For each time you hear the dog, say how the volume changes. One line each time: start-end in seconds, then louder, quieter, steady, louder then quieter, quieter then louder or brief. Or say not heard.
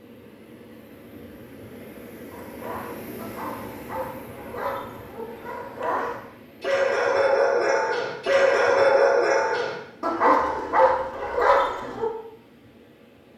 2.3-12.1 louder.